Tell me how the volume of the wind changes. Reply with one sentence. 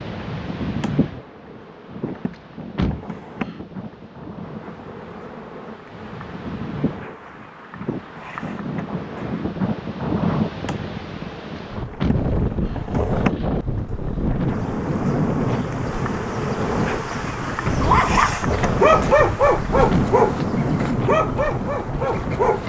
The volume of the wind goes up.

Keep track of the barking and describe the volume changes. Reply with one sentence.
The volume of the barking goes down.